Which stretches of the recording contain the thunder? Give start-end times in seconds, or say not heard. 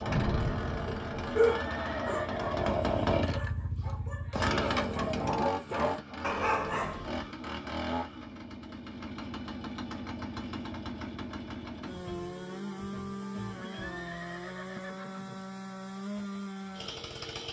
0.1-1.6.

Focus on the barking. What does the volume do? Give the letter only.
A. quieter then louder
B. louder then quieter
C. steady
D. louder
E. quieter
A.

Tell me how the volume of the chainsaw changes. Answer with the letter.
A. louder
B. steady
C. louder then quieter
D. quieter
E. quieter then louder
D.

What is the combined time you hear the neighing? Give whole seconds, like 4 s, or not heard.
3 s.